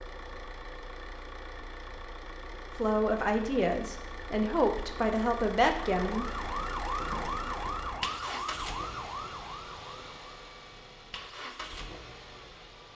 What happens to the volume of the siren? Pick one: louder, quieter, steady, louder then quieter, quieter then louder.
quieter.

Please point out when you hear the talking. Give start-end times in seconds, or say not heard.
2.8-6.3.